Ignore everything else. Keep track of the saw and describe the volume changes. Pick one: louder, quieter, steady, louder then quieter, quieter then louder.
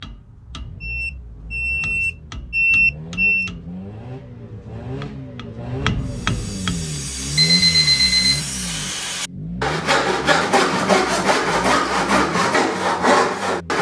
louder.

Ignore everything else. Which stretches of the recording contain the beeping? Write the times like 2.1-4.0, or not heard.
0.8-3.5, 7.3-8.4.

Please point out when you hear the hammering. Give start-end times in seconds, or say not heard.
0.0-6.9.